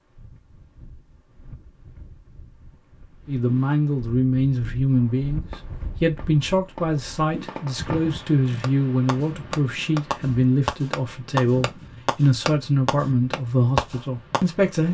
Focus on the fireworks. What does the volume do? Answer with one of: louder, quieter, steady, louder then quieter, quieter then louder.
louder.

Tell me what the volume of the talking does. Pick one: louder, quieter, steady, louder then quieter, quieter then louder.
steady.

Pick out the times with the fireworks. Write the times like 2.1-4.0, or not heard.
4.9-14.4.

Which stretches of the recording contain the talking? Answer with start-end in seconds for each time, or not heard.
3.2-14.9.